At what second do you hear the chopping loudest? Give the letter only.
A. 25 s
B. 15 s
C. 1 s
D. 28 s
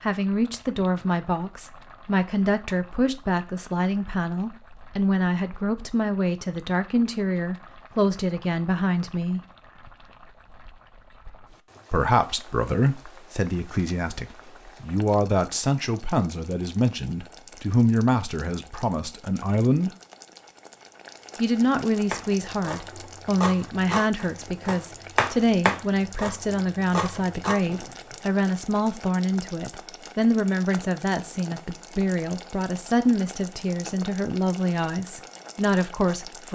A.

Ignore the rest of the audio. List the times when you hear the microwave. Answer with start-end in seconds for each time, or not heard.
not heard.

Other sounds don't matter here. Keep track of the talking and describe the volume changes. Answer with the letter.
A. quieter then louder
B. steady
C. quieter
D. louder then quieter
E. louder
B.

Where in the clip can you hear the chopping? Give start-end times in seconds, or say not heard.
22.1-28.1.